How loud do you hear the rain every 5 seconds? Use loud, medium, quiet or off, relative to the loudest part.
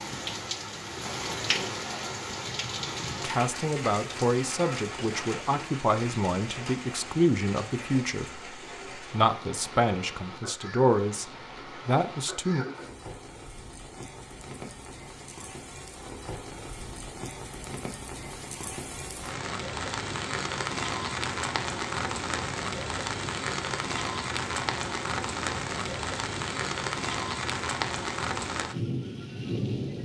loud, medium, medium, medium, loud, loud.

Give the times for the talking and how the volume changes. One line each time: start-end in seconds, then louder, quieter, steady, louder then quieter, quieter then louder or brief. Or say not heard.
3.2-12.7 steady.